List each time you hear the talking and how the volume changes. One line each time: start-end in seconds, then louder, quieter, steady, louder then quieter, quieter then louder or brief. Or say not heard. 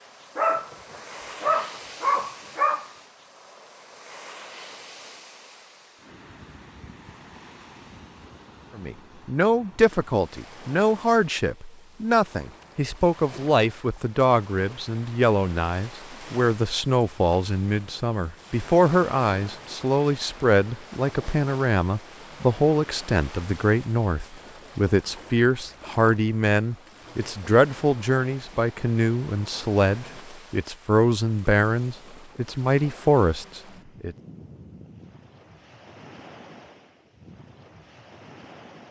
8.8-34.1 steady.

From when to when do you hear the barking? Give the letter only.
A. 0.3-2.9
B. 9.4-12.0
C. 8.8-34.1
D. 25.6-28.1
A.